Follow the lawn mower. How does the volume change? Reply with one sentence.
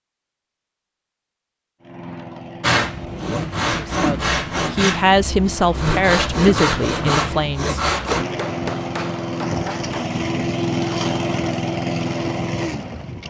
The loudness of the lawn mower goes up.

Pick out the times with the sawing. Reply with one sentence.
The sawing can be heard from 2.6 to 8.2 s.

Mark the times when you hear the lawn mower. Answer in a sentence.
The lawn mower can be heard from 1.8 to 13.2 s.